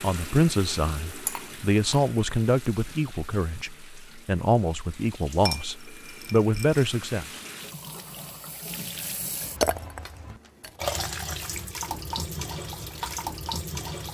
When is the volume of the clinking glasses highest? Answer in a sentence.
The volume of the clinking glasses peaks at 10 seconds.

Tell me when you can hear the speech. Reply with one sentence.
You can hear the speech from 0.0 to 7.2 s.